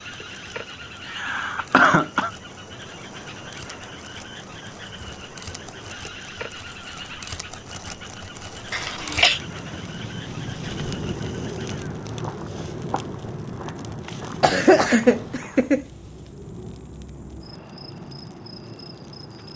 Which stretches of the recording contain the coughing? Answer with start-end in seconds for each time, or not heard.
1.1-2.3, 8.7-9.4, 14.4-15.8.